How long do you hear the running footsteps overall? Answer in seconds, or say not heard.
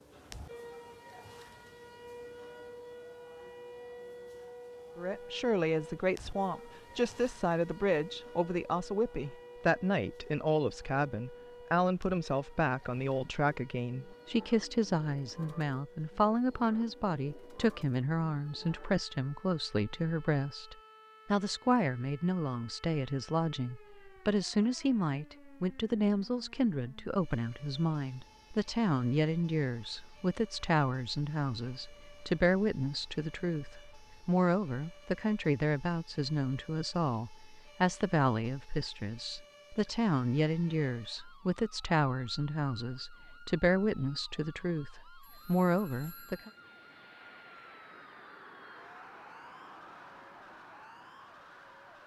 not heard.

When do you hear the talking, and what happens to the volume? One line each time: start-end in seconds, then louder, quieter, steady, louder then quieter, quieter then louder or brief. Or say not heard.
5.0-46.5 steady.